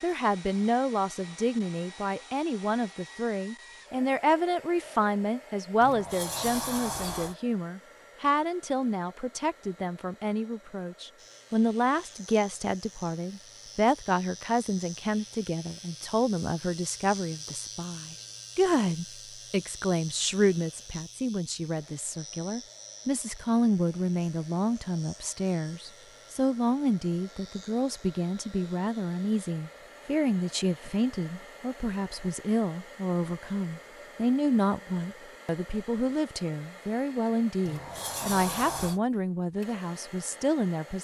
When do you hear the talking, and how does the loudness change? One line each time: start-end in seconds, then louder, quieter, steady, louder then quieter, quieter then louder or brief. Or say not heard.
0.0-40.9 steady.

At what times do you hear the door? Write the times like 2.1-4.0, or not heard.
5.8-7.3, 37.6-39.0.